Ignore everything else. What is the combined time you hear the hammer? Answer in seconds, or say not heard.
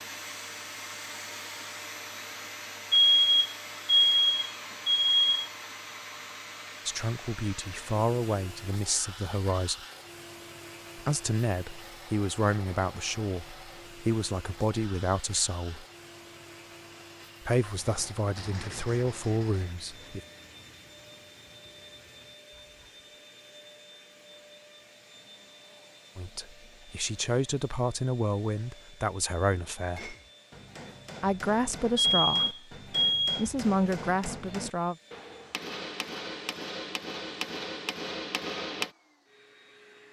9 s.